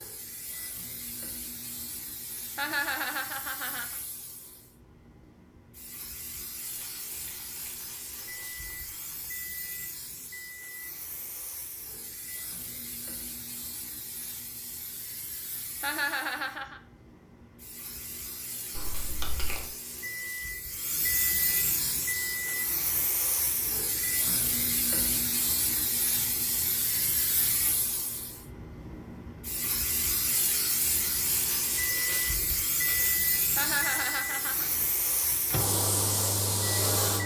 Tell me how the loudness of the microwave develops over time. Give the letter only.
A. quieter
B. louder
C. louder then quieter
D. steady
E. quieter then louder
B.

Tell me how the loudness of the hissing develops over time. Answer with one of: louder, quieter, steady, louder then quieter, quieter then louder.
louder.